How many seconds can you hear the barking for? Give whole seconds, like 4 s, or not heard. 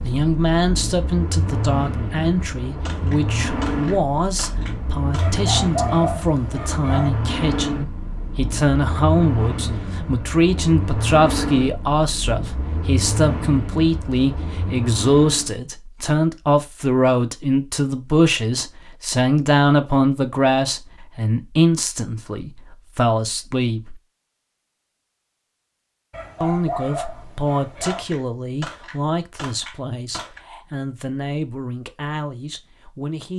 4 s.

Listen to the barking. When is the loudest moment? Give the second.
6 s.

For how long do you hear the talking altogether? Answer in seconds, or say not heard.
31 s.